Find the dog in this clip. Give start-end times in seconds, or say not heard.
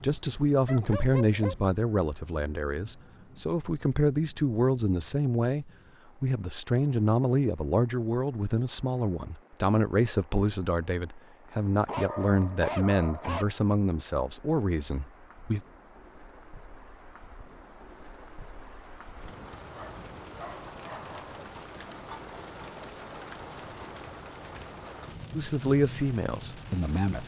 0.2-1.6, 11.8-13.4, 19.7-21.4.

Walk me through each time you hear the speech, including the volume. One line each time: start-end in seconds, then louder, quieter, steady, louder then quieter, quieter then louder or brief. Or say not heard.
0.0-15.6 steady
25.4-27.2 brief.